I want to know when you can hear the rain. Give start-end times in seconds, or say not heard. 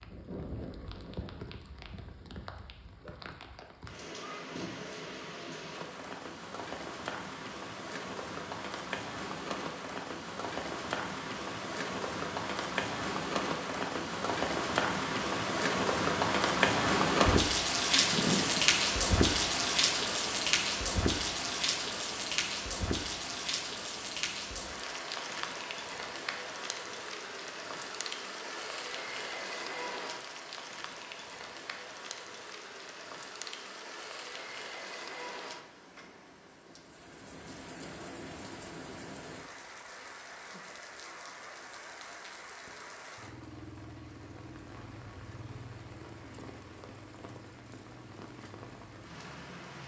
0.0-49.8.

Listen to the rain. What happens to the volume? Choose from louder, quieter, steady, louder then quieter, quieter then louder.
louder then quieter.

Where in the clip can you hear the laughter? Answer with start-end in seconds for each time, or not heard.
17.9-18.6.